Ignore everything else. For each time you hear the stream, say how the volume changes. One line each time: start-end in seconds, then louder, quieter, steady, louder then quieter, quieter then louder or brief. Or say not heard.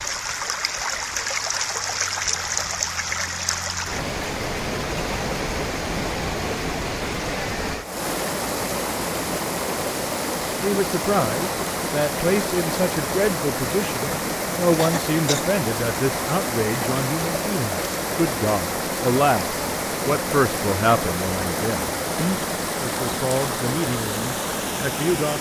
0.0-25.3 steady.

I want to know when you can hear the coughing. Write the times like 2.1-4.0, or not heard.
14.8-15.5.